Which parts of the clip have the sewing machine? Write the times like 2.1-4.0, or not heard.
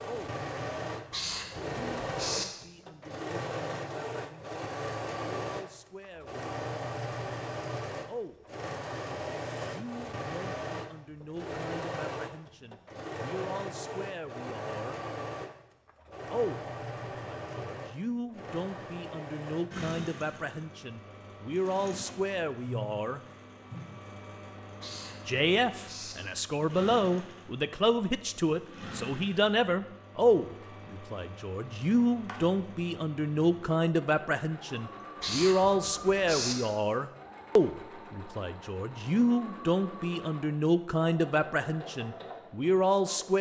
0.0-43.3.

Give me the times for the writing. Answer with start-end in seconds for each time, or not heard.
1.1-2.5, 24.8-26.1, 35.2-36.5.